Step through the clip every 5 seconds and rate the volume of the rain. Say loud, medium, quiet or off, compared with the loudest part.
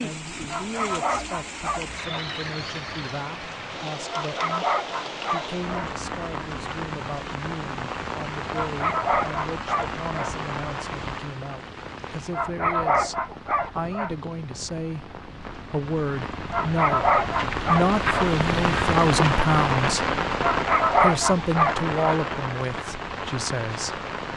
medium, medium, medium, loud, loud.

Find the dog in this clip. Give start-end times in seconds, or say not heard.
0.5-2.2, 4.1-5.9, 8.5-10.3, 12.3-14.2, 16.5-18.3, 20.4-22.2.